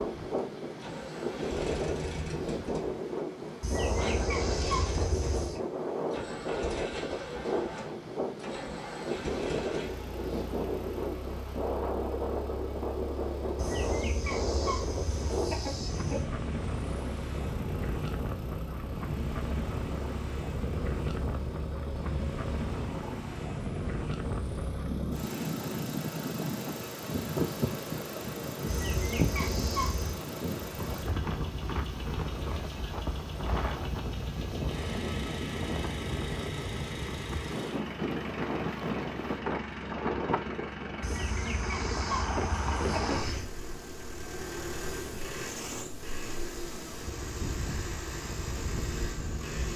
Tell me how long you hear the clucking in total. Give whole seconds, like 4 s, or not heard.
9 s.